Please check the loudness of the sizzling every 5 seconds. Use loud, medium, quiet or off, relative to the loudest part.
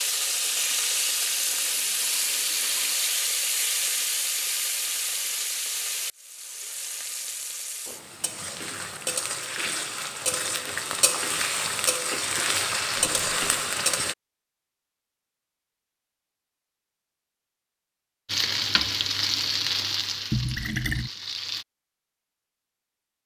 loud, medium, loud, loud, medium.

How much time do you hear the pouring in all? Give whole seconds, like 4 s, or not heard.
3 s.